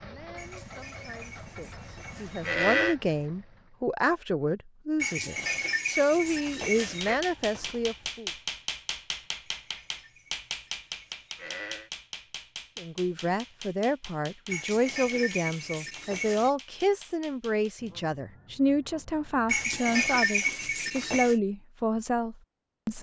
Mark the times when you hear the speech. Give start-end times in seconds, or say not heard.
0.0-8.3, 12.8-22.9.